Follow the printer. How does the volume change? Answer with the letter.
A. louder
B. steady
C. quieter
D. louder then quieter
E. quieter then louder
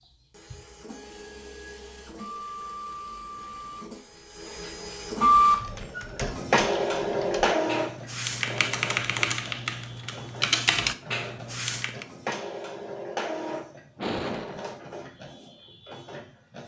D.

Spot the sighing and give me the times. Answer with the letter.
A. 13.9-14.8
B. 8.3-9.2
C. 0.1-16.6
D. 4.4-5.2
A.